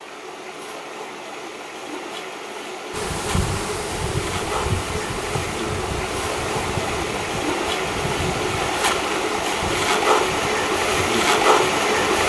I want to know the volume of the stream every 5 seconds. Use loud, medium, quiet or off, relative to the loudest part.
quiet, medium, loud.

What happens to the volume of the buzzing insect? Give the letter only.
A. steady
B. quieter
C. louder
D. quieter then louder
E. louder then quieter
B.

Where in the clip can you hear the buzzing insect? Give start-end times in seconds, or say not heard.
2.9-12.2.